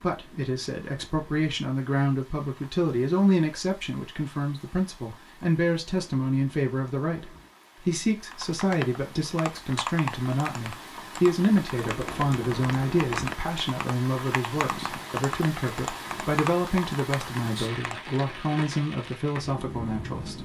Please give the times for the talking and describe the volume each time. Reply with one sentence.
The talking can be heard from 0.0 to 20.3 s, at a steady volume.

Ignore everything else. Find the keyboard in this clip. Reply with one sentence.
You can hear the keyboard from 8.3 to 18.1 s.